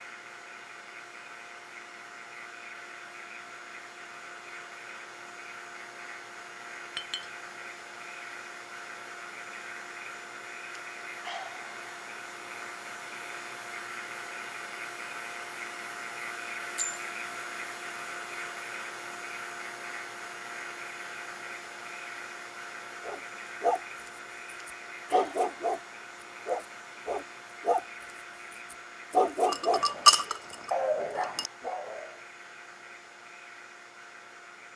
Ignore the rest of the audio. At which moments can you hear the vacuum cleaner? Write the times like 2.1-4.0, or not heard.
0.0-34.7.